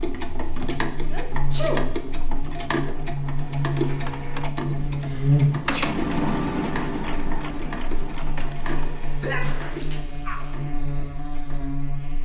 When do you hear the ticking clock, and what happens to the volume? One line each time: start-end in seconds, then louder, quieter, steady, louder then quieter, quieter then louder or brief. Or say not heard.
0.0-11.7 quieter.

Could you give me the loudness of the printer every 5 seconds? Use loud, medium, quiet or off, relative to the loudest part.
medium, loud, off.